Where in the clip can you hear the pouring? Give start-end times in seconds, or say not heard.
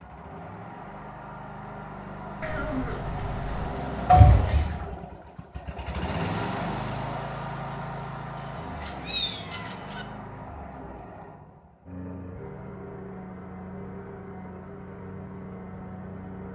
4.0-4.8.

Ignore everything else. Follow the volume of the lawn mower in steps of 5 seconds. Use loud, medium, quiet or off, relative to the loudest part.
loud, loud, medium, medium.